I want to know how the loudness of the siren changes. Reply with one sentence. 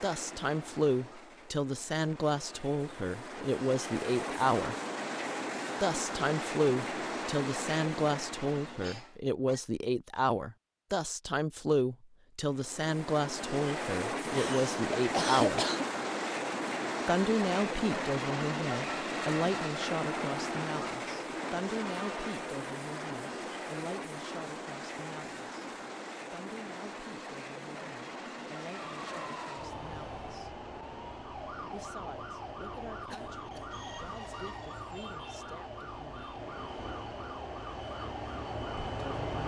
The loudness of the siren stays about the same.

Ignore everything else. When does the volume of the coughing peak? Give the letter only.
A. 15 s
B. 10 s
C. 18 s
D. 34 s
A.